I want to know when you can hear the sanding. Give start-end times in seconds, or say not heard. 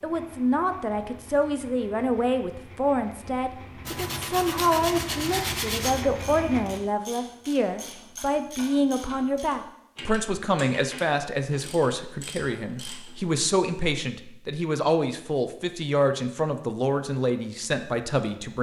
3.9-6.0.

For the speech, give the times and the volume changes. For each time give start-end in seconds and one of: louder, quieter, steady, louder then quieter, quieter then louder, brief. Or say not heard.
0.0-18.5 steady.